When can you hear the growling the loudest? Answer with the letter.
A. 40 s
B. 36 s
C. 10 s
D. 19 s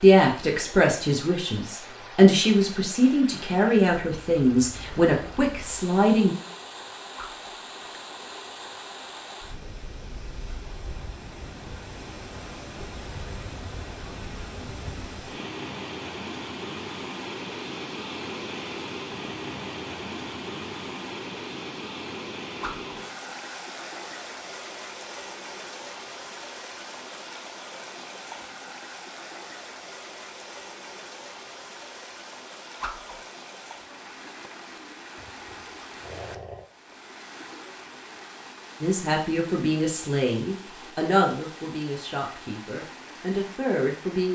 B.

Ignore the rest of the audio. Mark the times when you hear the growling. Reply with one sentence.
You can hear the growling from 35.1 to 36.6 s.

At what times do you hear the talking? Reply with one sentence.
You can hear the talking from 0.0 to 6.3 s and from 38.8 to 44.3 s.